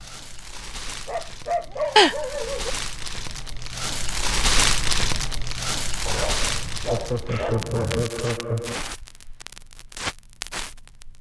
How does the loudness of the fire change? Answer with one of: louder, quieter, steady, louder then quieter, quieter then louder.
louder then quieter.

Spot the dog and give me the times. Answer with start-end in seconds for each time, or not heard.
1.1-2.8, 6.0-8.1.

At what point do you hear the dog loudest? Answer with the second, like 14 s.
2 s.